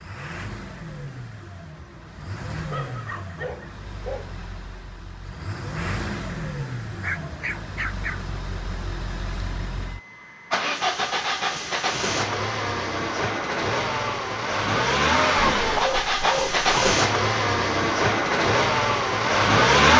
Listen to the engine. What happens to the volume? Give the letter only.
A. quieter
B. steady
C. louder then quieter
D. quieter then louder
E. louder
E.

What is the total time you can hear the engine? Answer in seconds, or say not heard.
20 s.